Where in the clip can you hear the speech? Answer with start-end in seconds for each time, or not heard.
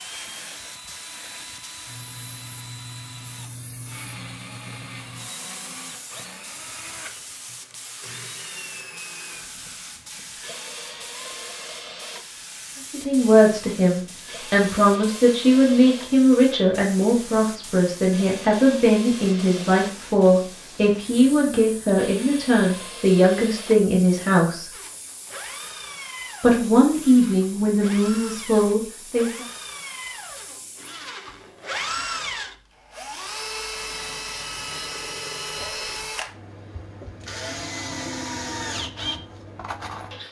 12.9-24.7, 26.4-29.4.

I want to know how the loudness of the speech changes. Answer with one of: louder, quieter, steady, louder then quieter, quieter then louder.
steady.